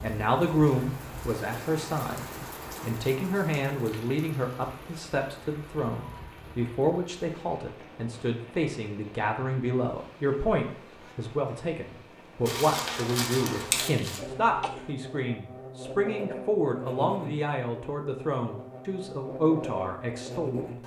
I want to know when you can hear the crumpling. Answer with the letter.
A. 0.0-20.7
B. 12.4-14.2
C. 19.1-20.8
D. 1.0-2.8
B.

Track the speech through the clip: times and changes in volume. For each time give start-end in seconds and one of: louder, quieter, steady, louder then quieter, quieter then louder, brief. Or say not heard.
0.0-20.7 steady.